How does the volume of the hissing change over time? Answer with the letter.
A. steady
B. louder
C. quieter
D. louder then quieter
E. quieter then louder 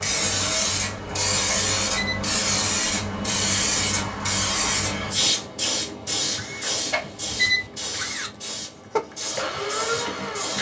C.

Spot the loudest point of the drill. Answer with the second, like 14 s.
9 s.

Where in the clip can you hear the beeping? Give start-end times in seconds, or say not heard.
1.4-2.2, 6.9-7.7.